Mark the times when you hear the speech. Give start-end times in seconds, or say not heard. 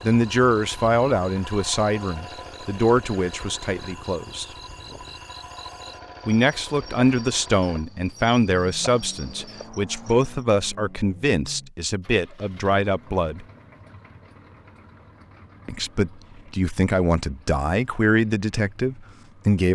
0.0-4.5, 6.2-13.4, 15.7-19.7.